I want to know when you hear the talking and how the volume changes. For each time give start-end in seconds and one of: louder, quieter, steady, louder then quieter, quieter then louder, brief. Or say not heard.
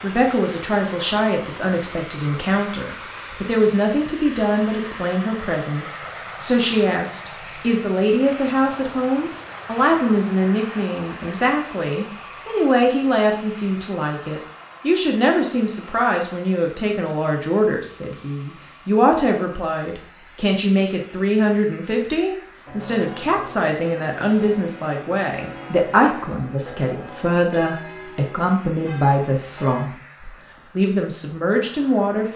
0.0-32.3 steady.